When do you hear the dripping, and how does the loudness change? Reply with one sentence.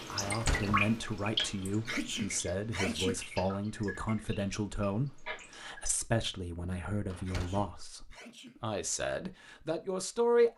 You can hear the dripping from 0.0 to 5.9 s, getting quieter.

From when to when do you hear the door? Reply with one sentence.
The door can be heard from 0.2 to 0.9 s and from 7.0 to 7.7 s.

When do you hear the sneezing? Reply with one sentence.
The sneezing can be heard from 1.9 to 3.1 s and from 7.2 to 8.6 s.